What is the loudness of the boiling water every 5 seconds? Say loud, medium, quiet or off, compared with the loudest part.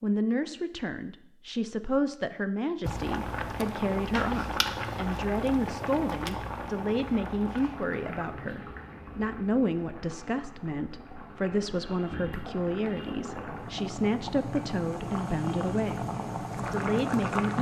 loud, medium, medium, loud.